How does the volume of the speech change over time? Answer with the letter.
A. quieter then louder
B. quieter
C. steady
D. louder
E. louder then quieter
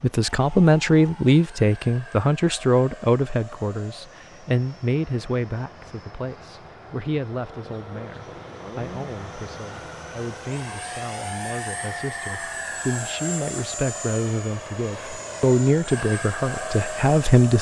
A.